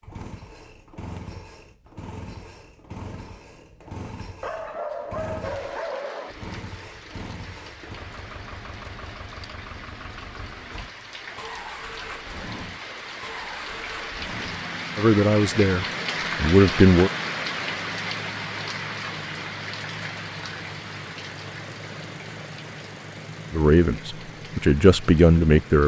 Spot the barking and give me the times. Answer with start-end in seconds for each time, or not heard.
4.4-6.4.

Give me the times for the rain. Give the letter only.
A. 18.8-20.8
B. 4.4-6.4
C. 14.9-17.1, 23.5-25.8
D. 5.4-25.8
D.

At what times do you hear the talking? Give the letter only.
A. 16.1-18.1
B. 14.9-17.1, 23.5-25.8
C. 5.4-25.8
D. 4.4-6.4
B.